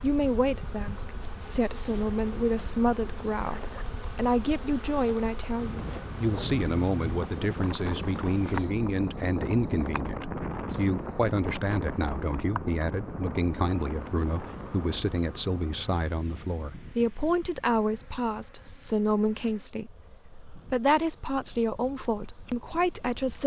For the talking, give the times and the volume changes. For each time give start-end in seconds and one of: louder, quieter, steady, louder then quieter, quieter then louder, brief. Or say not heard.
0.0-23.4 steady.